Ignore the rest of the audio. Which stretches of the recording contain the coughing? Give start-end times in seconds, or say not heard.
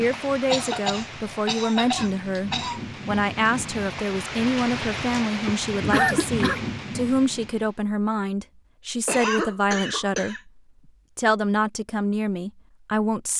0.5-2.8, 5.5-6.6, 9.1-10.4.